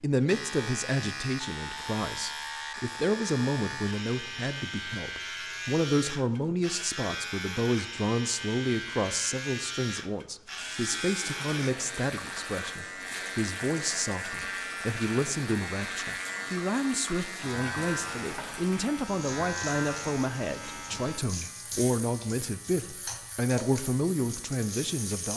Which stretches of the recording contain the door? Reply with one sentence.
The door can't be heard in this clip.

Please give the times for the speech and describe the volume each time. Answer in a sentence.
The speech can be heard from 0.0 to 25.3 s, at a steady volume.